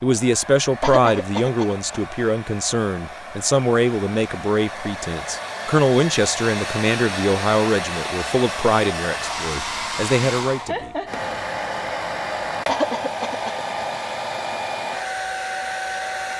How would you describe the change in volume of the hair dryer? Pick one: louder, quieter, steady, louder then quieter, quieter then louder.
louder.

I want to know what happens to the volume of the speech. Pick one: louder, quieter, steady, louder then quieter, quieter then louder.
steady.